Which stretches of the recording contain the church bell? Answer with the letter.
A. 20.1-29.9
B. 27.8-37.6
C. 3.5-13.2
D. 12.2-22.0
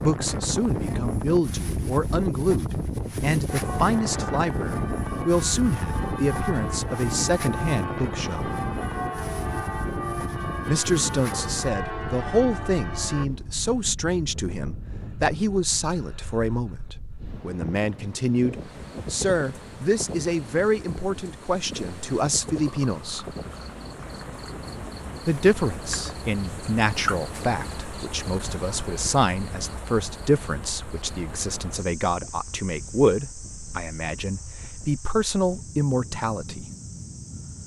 C.